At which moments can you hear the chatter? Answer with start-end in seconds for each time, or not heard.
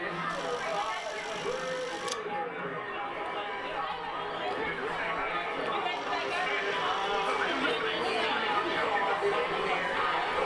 0.0-10.4.